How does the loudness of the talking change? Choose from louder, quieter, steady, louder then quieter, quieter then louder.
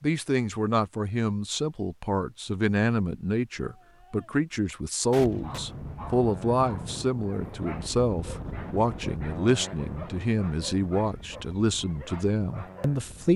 steady.